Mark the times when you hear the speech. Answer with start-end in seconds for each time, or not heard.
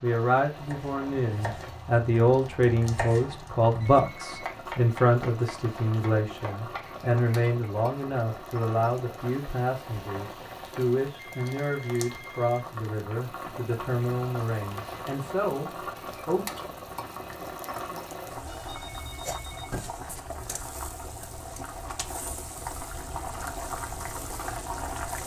0.0-16.4.